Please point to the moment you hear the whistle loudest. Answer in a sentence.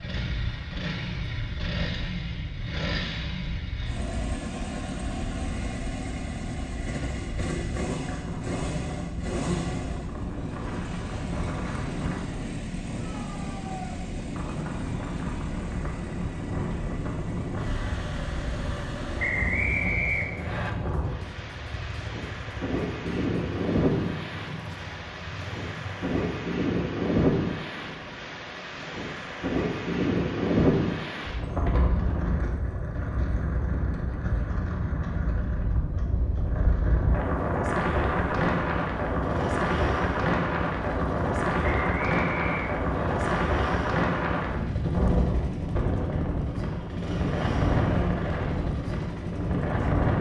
The volume of the whistle peaks at 20 seconds.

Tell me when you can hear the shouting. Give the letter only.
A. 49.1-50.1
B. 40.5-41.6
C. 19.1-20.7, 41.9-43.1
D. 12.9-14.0
D.